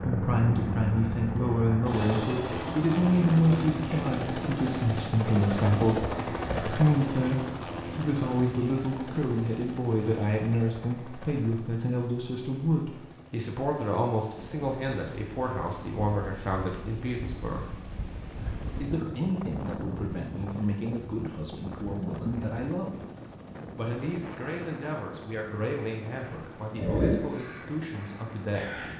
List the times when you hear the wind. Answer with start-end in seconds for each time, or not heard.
14.3-28.9.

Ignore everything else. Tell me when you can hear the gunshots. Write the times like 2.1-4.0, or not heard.
not heard.